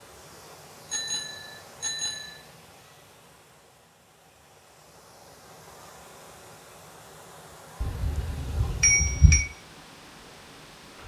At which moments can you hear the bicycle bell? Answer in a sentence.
You can hear the bicycle bell from 0.9 to 2.4 s and from 7.8 to 9.4 s.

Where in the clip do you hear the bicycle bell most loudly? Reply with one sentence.
The volume of the bicycle bell peaks at 9 seconds.